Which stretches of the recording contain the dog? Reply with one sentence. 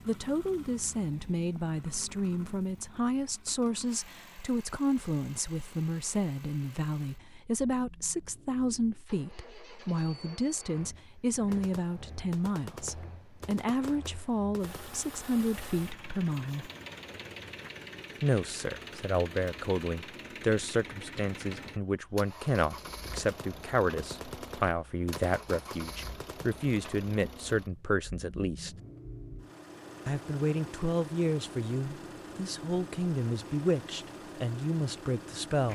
You can't hear the dog here.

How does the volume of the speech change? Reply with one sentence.
The loudness of the speech stays about the same.